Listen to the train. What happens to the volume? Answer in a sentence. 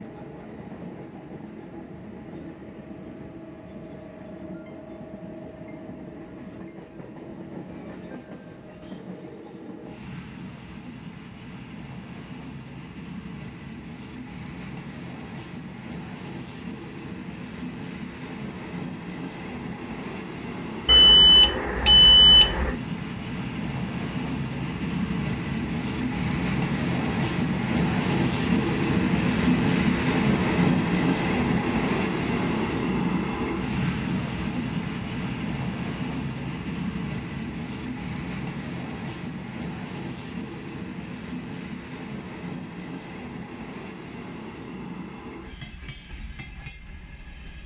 The loudness of the train goes up, then down.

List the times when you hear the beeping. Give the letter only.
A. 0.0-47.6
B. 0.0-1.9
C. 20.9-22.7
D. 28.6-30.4
C.